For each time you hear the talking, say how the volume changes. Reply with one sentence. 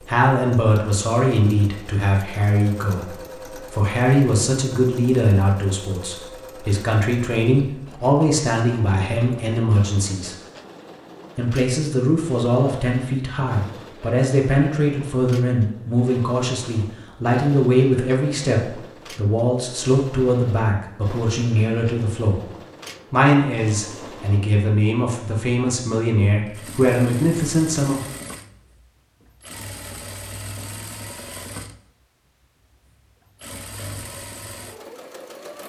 The talking can be heard from 0.1 to 10.3 s, at a steady volume; from 11.3 to 22.4 s, at a steady volume; and from 23.1 to 28.0 s, getting louder.